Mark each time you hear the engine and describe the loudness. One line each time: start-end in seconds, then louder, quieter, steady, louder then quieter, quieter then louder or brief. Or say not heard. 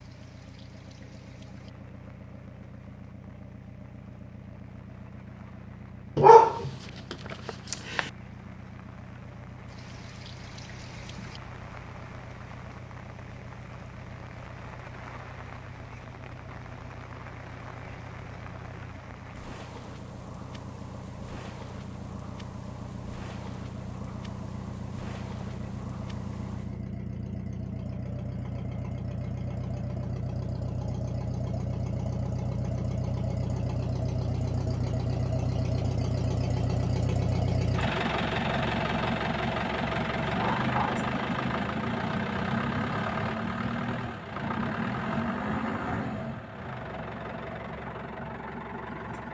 0.0-49.2 louder.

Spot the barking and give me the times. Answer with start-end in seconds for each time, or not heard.
6.2-8.1, 40.4-41.0.